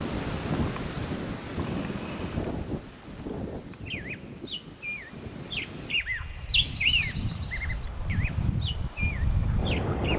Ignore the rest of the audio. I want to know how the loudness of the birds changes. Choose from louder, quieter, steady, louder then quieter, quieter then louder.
louder then quieter.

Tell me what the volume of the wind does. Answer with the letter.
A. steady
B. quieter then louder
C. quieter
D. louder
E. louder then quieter
B.